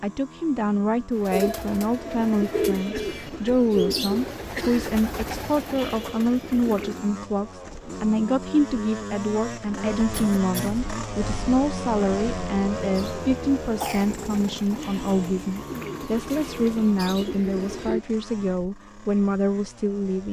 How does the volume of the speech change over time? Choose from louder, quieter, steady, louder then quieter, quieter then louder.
steady.